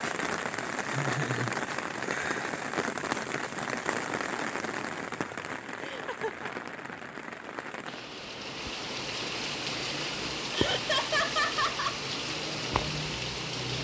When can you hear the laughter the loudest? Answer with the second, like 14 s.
11 s.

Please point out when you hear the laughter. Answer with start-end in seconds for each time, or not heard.
0.8-1.6, 5.8-6.5, 10.5-11.9.